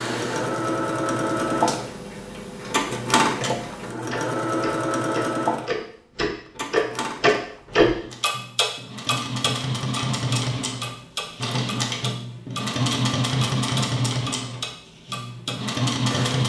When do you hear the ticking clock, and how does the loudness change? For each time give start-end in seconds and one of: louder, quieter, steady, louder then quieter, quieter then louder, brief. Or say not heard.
0.0-16.4 louder then quieter.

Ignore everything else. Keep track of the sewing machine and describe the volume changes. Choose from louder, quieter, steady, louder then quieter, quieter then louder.
quieter then louder.